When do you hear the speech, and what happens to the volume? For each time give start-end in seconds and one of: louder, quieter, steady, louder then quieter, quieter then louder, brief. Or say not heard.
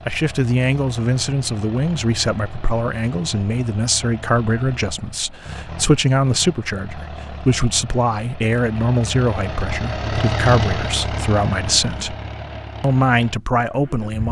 0.1-12.2 steady
12.8-14.2 brief.